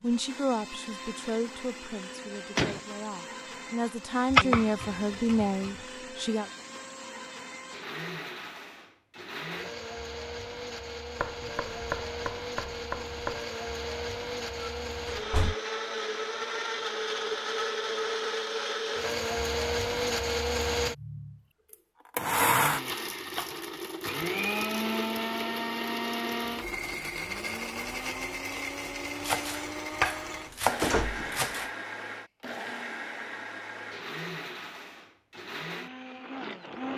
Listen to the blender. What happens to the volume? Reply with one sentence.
The volume of the blender goes up, then down.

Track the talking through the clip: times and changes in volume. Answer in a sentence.
You can hear the talking from 0.0 to 6.5 s, getting quieter then louder.